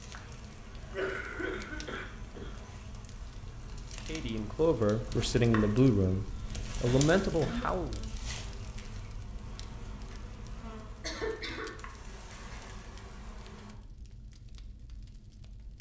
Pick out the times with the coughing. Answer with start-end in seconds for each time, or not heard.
0.9-2.5, 6.0-7.8, 11.0-11.7.